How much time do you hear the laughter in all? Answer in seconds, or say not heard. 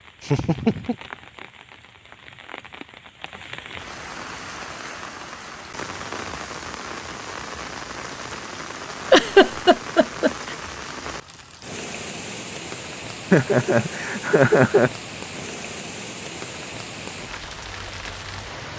4 s.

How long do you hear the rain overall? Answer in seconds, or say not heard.
19 s.